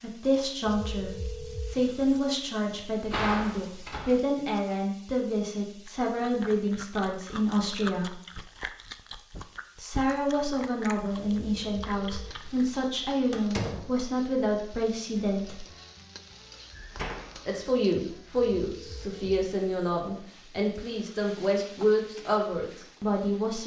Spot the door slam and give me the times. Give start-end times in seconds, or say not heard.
2.6-4.2, 13.3-13.9, 16.7-17.4.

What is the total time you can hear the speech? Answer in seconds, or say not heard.
20 s.